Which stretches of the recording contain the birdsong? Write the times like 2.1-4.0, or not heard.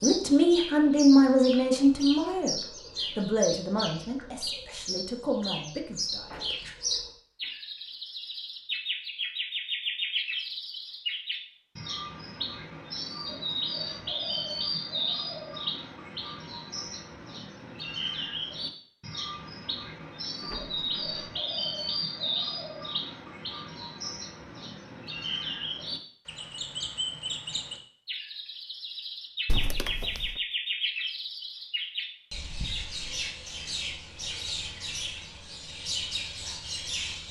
0.0-37.2.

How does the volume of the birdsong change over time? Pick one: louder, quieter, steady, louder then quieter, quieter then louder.
steady.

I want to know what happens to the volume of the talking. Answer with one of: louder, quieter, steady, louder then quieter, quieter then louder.
quieter.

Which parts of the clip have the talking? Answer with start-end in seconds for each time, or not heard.
0.0-6.5.